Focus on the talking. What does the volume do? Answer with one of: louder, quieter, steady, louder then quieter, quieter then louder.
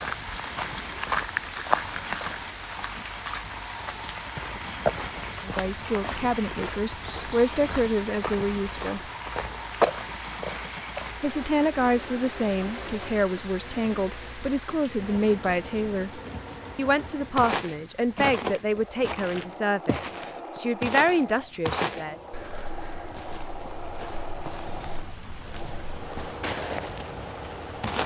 steady.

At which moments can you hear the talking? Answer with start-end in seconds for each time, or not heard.
5.4-9.1, 11.2-22.1.